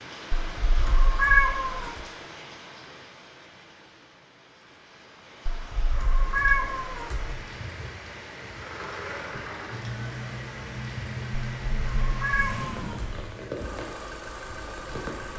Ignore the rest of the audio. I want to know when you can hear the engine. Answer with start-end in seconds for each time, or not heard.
8.5-15.3.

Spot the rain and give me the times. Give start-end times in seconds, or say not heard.
0.0-15.3.